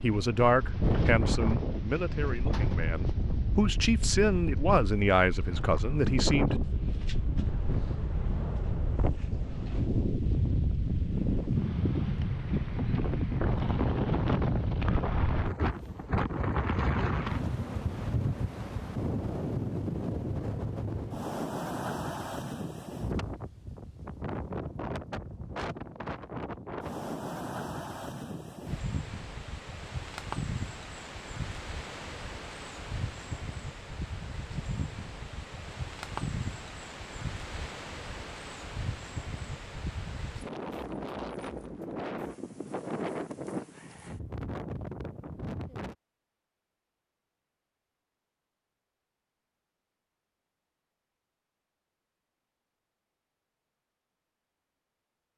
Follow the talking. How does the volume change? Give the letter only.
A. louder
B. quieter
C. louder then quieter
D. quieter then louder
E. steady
D.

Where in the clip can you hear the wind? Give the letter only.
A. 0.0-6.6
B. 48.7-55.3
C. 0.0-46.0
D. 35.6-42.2
C.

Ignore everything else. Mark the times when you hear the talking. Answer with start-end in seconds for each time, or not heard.
0.0-6.6.